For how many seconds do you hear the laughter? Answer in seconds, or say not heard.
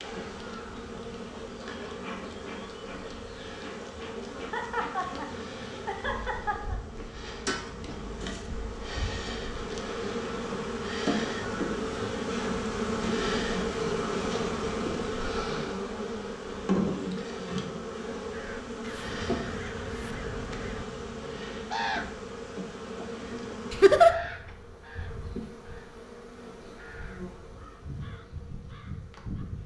3 s.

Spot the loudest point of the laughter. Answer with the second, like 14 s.
24 s.